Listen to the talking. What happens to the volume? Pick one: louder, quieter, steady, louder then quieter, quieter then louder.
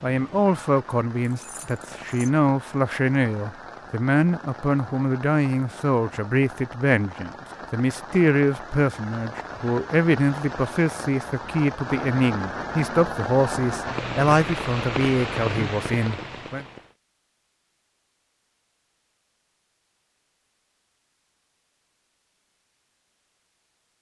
steady.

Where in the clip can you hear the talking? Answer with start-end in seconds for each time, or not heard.
0.0-16.6.